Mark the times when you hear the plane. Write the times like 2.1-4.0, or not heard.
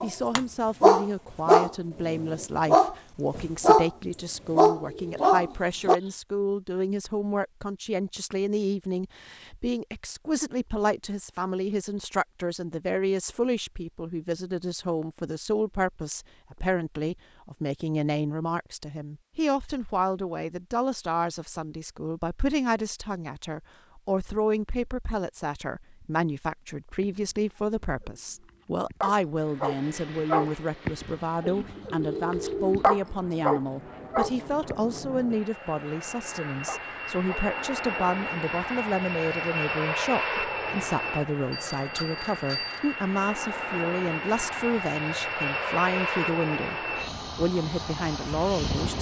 29.4-48.9.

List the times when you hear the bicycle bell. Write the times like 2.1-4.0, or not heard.
41.5-43.0.